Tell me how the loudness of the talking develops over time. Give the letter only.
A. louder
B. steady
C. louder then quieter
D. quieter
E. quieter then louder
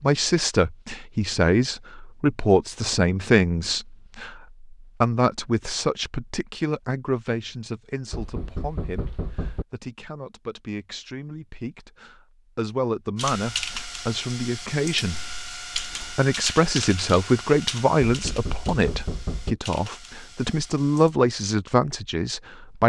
E.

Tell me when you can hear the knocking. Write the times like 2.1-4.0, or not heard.
8.1-9.7, 18.1-19.6.